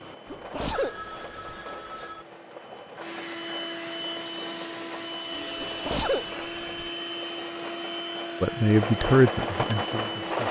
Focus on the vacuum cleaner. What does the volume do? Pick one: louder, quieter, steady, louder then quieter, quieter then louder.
louder.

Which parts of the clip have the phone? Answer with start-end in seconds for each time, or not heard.
0.7-2.2, 5.3-5.7.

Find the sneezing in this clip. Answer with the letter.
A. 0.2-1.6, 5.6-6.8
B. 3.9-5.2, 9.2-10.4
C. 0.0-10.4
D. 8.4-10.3
A.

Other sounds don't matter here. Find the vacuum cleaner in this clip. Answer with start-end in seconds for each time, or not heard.
0.0-10.4.